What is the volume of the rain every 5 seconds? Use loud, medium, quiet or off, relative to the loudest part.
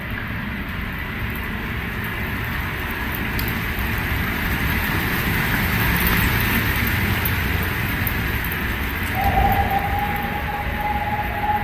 loud, loud, medium.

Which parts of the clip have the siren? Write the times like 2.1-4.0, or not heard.
9.1-11.5.